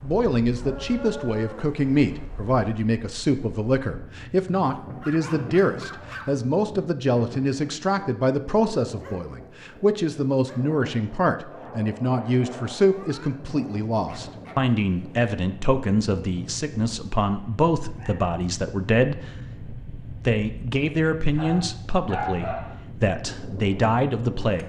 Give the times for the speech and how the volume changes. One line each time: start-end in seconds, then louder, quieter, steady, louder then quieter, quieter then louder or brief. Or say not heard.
0.0-24.6 steady.